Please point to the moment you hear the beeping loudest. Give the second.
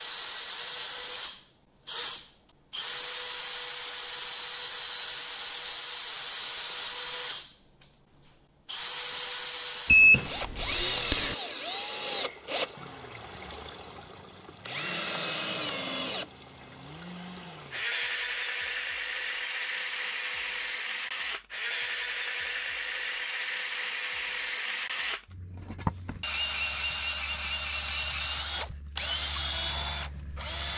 10 s.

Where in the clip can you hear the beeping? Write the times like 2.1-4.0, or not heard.
9.8-11.3.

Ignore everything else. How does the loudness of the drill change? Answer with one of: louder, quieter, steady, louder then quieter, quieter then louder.
steady.